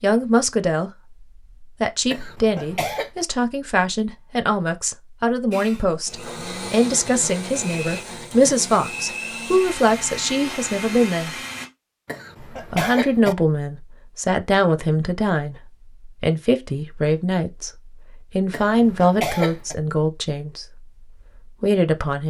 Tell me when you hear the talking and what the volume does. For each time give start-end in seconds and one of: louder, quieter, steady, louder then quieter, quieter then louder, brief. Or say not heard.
0.0-0.9 brief
1.6-11.3 steady
12.7-20.9 steady
21.6-22.2 brief.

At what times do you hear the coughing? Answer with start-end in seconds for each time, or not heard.
2.1-3.1, 12.1-13.3, 18.5-19.8.